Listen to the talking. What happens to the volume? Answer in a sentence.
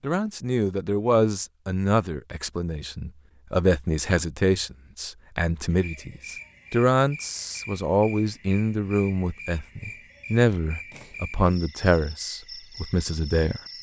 The loudness of the talking stays about the same.